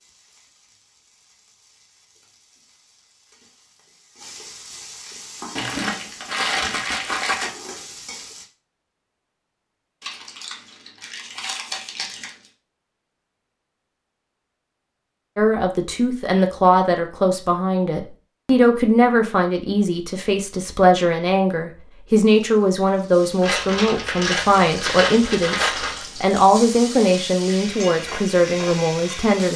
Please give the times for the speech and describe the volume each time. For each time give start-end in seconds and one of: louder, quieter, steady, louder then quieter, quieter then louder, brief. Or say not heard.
15.3-29.5 steady.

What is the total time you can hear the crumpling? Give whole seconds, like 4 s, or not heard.
7 s.